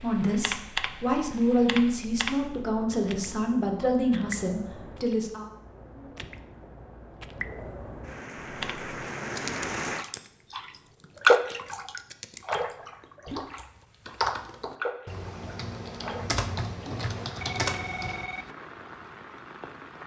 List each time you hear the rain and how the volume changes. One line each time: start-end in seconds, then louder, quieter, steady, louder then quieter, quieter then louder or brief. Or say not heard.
0.0-20.0 louder then quieter.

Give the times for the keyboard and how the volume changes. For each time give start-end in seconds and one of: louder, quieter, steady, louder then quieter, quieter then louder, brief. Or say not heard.
0.2-2.9 brief
8.4-18.2 quieter then louder.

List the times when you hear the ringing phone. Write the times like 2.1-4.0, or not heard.
17.4-18.6.